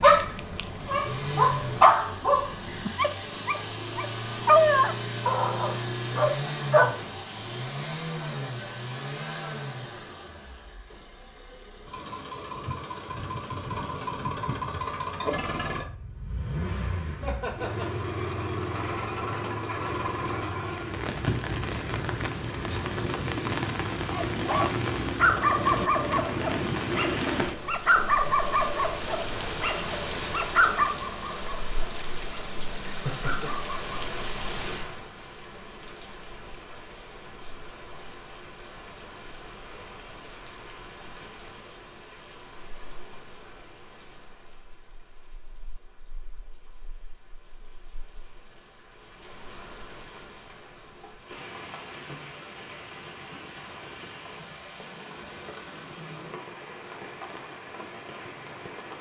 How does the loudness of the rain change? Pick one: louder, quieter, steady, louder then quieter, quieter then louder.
quieter then louder.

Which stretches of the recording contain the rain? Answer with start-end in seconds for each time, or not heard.
20.6-58.9.